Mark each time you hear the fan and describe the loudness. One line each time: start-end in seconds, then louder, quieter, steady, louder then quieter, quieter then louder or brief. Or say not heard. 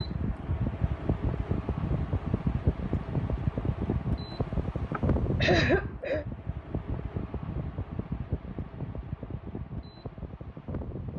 0.0-11.1 quieter.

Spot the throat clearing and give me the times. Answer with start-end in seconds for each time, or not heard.
4.9-6.2.